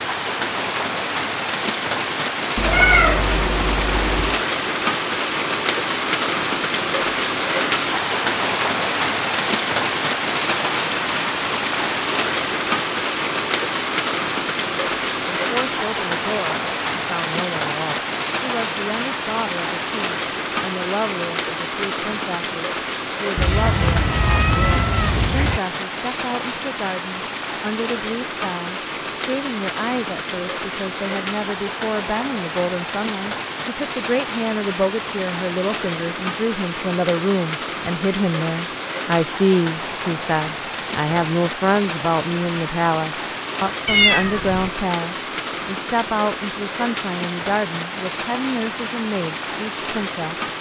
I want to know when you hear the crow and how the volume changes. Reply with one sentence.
You can't hear the crow here.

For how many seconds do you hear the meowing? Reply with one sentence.
You can hear the meowing for 5 seconds altogether.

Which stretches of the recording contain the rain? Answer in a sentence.
You can hear the rain from 0.0 to 50.5 s.